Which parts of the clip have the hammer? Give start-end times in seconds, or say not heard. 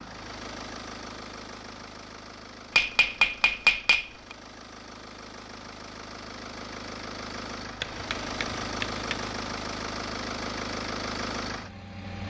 2.8-4.3, 7.8-9.3.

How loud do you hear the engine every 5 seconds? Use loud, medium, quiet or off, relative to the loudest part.
medium, loud, loud.